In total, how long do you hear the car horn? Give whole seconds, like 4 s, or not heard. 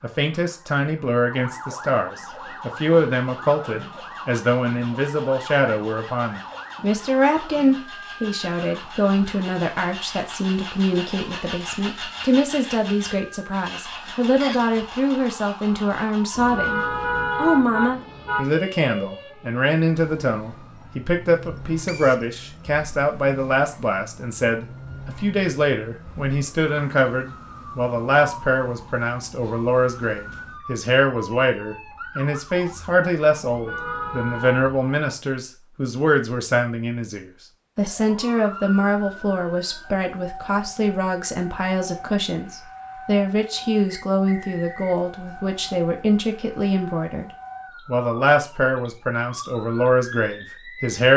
3 s.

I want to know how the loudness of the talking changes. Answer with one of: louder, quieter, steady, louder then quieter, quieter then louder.
steady.